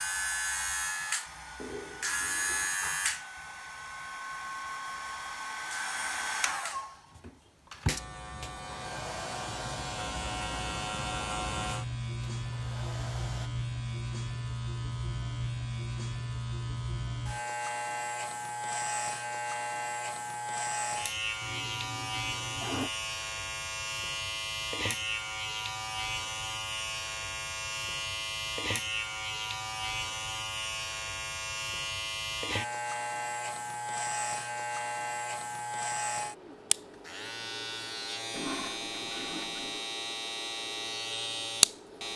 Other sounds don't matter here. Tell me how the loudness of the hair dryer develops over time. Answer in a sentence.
The volume of the hair dryer goes up, then down.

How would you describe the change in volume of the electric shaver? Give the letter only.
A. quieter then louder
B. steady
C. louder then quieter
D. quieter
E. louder
B.